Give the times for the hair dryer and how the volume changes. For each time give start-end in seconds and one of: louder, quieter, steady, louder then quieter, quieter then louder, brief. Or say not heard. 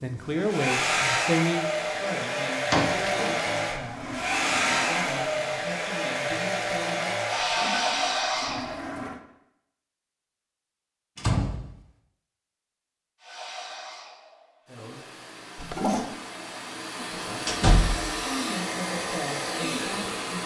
0.0-8.9 steady
13.2-20.4 louder.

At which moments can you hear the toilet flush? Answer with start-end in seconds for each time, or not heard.
3.1-5.2, 7.3-9.2, 15.6-16.2.